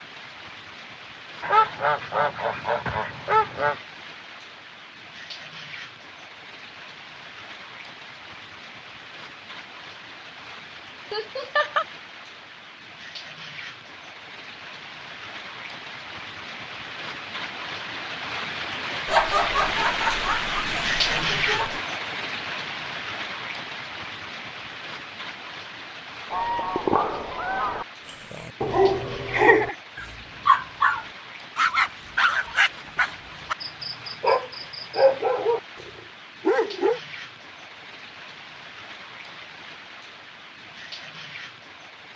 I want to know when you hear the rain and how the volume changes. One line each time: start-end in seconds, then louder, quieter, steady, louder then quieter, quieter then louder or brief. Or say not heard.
0.0-42.1 louder then quieter.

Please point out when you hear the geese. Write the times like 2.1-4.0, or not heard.
1.4-3.8, 26.3-27.9.